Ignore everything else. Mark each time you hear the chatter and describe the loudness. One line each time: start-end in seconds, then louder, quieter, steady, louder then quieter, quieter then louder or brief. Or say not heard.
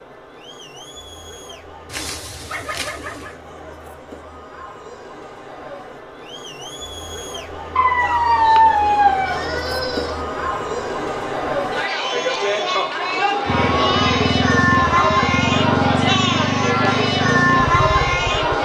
0.0-18.6 louder.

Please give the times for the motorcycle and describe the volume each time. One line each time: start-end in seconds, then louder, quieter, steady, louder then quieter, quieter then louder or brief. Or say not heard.
13.4-18.6 steady.